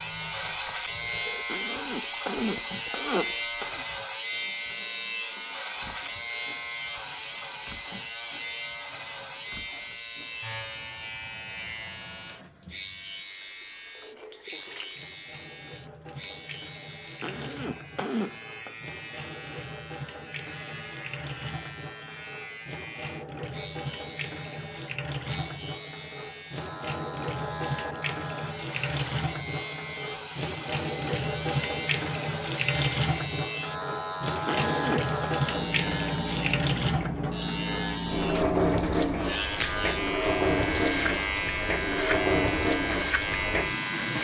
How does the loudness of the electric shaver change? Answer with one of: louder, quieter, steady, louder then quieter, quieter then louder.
quieter then louder.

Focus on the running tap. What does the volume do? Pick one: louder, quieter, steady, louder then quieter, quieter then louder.
louder.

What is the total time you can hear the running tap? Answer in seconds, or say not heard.
44 s.